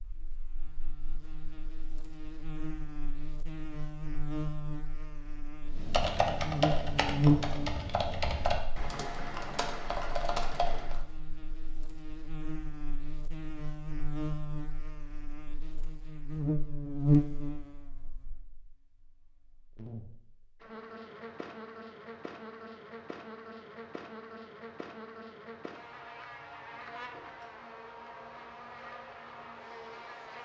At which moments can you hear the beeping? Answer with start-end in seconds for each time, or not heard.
not heard.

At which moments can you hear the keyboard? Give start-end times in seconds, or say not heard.
5.7-11.0.